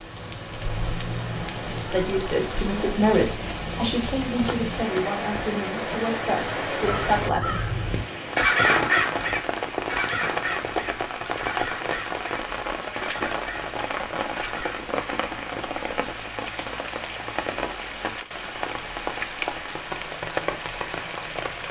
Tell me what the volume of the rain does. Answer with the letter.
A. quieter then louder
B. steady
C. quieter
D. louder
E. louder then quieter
B.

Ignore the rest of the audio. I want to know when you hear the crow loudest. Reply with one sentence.
The loudest moment of the crow is at 9 seconds.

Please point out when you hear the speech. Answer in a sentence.
You can hear the speech from 1.9 to 7.7 s.